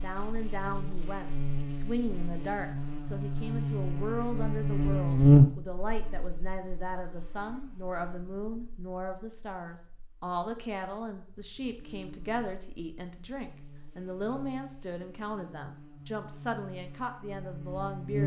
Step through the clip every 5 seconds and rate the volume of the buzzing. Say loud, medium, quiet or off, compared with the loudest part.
medium, loud, quiet, quiet.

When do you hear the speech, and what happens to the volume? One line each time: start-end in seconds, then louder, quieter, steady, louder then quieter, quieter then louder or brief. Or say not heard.
0.0-18.2 steady.